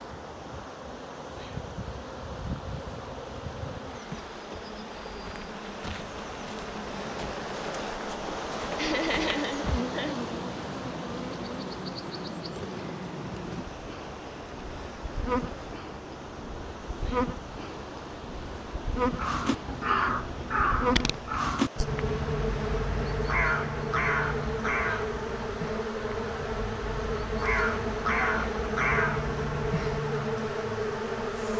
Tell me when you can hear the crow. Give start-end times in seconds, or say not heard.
19.1-30.0.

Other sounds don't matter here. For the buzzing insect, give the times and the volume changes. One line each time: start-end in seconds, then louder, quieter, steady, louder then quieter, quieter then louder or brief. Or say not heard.
0.0-31.5 louder.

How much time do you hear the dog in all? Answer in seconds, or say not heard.
not heard.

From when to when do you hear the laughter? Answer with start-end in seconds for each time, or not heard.
8.8-10.2.